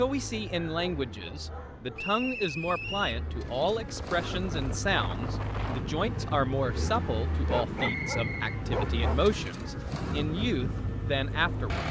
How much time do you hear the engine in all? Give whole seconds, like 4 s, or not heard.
12 s.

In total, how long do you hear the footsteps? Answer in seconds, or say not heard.
not heard.